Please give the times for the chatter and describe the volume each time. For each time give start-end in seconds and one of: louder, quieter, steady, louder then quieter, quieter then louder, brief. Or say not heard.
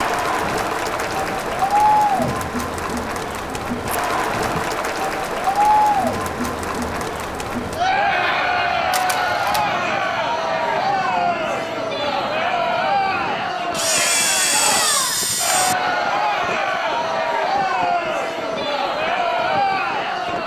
0.0-20.4 steady.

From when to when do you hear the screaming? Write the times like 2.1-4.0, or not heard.
not heard.